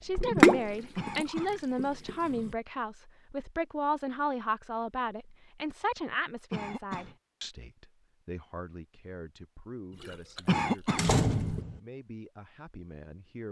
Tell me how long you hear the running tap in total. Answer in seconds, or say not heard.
4 s.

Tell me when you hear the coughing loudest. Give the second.
11 s.